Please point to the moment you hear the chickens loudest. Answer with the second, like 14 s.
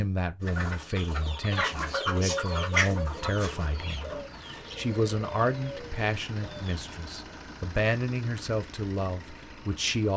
3 s.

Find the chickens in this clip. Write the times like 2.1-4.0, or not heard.
0.4-6.9.